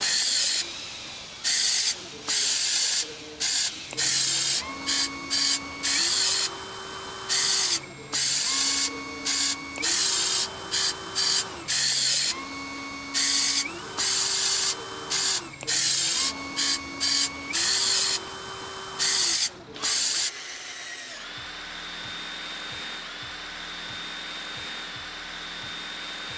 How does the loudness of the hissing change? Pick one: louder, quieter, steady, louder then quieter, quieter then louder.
steady.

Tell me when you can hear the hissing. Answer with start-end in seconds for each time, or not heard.
0.0-20.3.